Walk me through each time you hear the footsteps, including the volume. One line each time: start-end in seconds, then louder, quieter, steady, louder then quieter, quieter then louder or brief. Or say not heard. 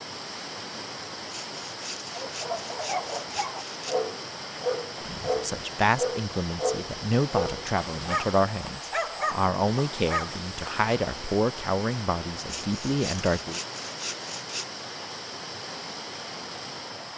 not heard.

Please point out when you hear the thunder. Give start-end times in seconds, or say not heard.
not heard.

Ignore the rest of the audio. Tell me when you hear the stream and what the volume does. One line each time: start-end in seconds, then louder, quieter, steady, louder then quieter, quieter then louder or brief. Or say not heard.
0.0-17.1 steady.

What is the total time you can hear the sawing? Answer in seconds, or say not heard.
5 s.